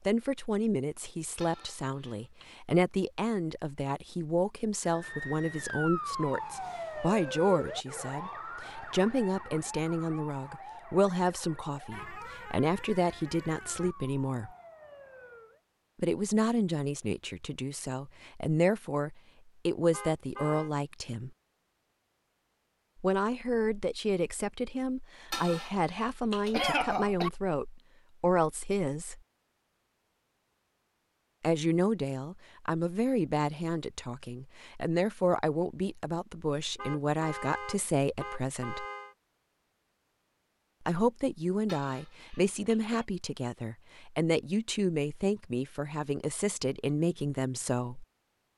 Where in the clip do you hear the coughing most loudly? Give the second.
27 s.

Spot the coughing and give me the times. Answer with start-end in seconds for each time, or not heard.
1.4-2.5, 25.3-27.3, 41.6-43.0.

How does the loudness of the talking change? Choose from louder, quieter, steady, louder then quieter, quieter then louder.
steady.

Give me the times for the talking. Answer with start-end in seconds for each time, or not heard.
0.1-14.5, 15.9-21.3, 23.0-29.2, 31.4-38.9, 40.9-48.0.